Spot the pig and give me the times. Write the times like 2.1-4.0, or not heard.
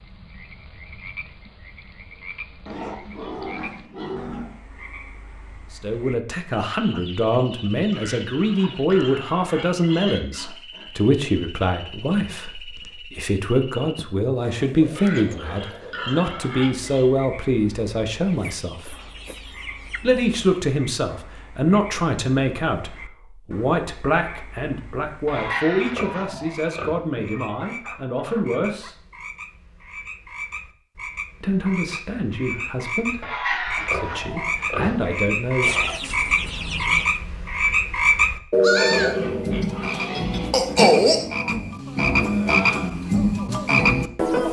2.6-4.5, 7.9-10.8, 14.9-17.1, 25.2-26.9, 33.2-35.0, 38.9-40.9.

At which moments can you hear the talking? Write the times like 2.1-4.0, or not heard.
5.7-18.9, 20.0-28.9, 31.4-36.1.